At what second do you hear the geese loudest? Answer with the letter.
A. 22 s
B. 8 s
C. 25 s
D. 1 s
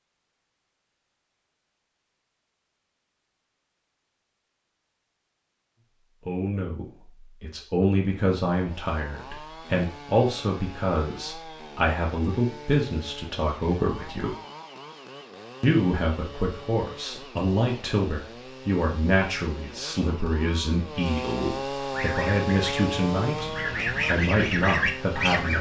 C.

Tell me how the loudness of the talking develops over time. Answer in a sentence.
The loudness of the talking stays about the same.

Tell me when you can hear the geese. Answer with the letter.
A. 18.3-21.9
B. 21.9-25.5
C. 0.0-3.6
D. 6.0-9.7
B.